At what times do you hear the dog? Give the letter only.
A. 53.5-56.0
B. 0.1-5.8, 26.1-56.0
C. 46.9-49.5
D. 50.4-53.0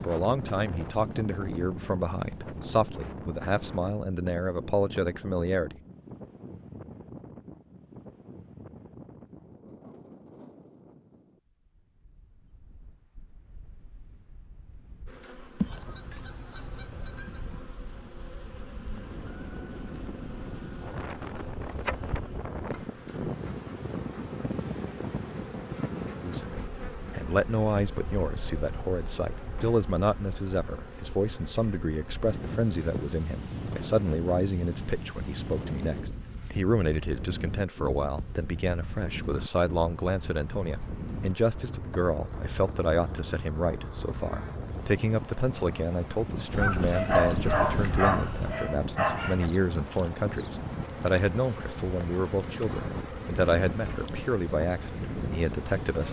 C.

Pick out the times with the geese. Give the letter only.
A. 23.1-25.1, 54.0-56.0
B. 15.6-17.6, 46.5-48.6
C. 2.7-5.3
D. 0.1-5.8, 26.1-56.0
B.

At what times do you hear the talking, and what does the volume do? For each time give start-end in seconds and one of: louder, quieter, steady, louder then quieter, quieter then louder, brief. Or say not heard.
0.1-5.8 steady
26.1-56.0 steady.